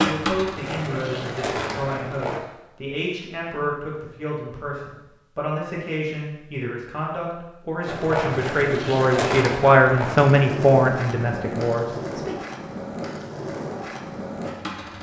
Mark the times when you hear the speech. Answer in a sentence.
You can hear the speech from 0.0 to 12.3 s.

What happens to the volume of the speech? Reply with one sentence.
The volume of the speech goes up.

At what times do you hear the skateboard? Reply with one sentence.
The skateboard can be heard from 0.0 to 2.4 s and from 7.8 to 14.9 s.